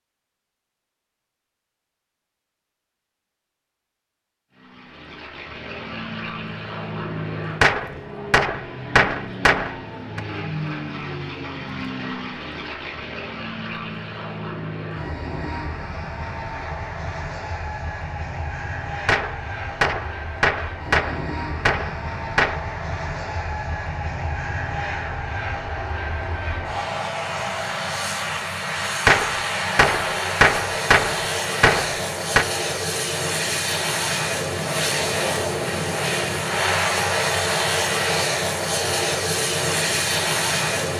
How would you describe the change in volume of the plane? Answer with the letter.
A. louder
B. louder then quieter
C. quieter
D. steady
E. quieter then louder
A.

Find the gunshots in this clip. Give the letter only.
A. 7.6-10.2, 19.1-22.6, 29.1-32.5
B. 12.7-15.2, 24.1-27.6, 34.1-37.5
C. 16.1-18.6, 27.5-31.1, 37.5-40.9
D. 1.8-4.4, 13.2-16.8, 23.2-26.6
A.